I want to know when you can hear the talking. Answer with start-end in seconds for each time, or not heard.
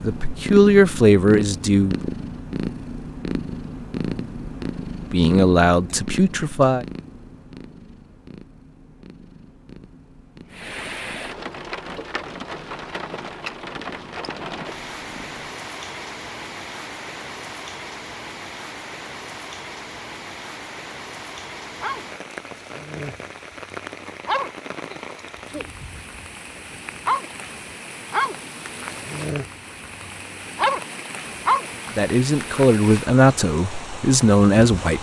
0.0-1.9, 5.1-6.8, 31.9-34.9.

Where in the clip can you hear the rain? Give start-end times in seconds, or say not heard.
10.5-34.9.